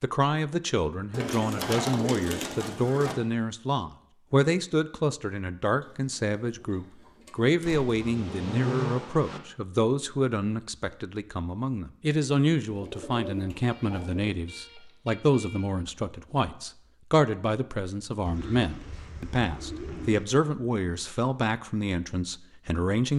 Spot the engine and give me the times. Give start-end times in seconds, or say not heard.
7.6-9.4.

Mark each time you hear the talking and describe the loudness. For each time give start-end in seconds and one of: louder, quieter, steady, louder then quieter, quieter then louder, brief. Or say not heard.
0.0-23.1 steady.